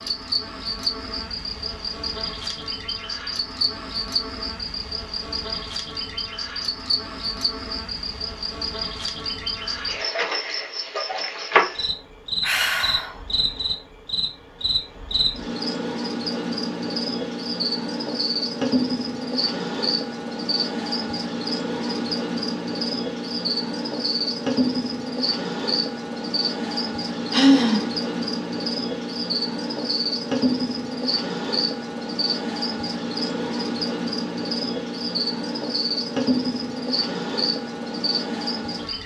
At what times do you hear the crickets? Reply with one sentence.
You can hear the crickets from 0.0 to 39.0 s.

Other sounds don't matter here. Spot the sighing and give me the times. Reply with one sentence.
The sighing can be heard from 12.4 to 13.2 s and from 27.3 to 27.9 s.